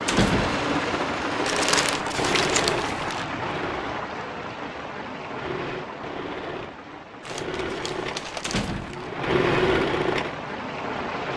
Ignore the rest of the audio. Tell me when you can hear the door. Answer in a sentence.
You can hear the door from 0.1 to 0.7 s and from 8.4 to 9.2 s.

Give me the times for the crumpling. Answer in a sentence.
You can hear the crumpling from 1.4 to 3.2 s and from 7.2 to 9.1 s.